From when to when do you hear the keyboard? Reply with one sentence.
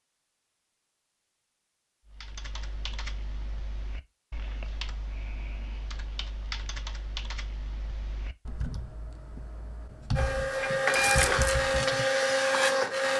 You can hear the keyboard from 2.0 to 12.1 s.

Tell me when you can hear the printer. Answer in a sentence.
The printer can be heard from 10.2 to 13.1 s.